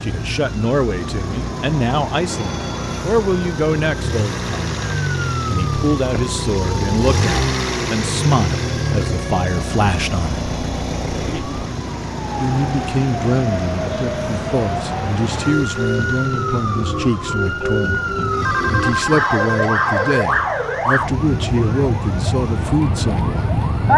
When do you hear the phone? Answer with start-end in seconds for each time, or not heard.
2.2-3.0, 18.4-20.2.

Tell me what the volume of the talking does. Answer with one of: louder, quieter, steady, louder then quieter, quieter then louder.
steady.